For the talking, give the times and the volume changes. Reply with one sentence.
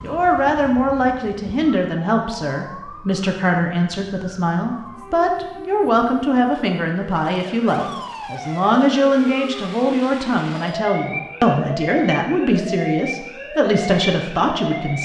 You can hear the talking from 0.0 to 15.0 s, at a steady volume.